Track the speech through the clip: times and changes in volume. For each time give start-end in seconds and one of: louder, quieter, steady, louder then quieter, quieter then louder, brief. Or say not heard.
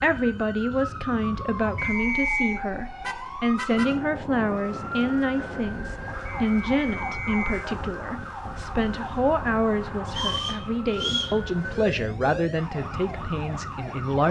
0.0-14.2 steady.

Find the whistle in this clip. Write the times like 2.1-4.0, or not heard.
1.8-2.6, 6.2-7.7, 10.2-11.3.